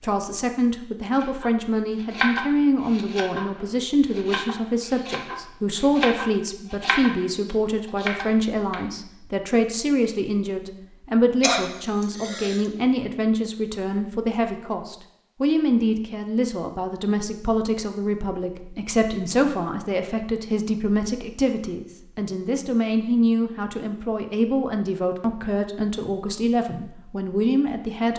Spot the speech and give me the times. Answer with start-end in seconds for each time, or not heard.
0.0-28.1.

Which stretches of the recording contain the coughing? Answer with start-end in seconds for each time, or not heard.
11.4-12.7.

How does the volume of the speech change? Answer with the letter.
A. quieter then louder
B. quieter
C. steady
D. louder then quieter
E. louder
C.